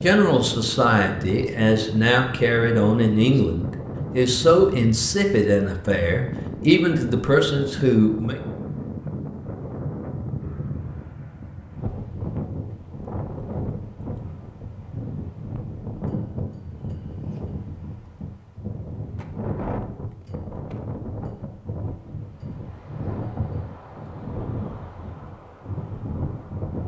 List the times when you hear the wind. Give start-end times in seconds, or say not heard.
0.0-26.8.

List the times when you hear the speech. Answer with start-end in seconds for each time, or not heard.
0.0-8.4.